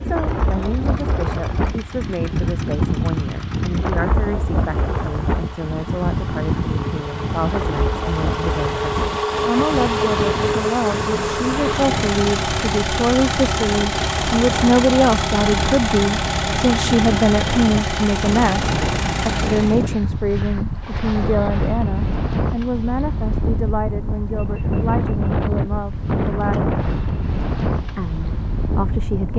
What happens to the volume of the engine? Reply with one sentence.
The loudness of the engine goes up.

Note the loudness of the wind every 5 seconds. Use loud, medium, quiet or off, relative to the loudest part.
loud, loud, medium, loud, loud, loud.